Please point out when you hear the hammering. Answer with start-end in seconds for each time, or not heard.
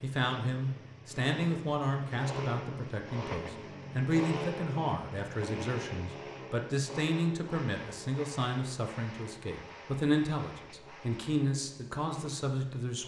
not heard.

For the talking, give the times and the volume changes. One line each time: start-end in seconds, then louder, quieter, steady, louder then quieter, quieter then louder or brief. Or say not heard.
0.0-13.0 steady.